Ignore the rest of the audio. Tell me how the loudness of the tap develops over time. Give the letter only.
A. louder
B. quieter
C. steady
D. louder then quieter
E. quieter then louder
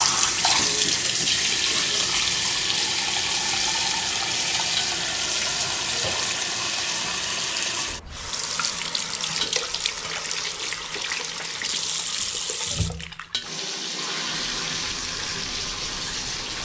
B.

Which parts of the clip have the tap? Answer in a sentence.
You can hear the tap from 0.0 to 16.6 s.